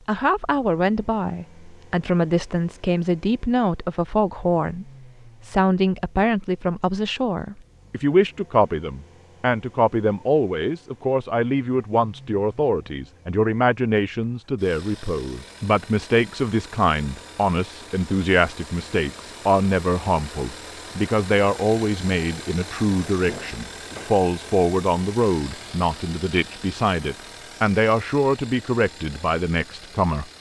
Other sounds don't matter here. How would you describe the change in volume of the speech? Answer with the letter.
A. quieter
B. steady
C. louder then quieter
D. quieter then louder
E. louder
B.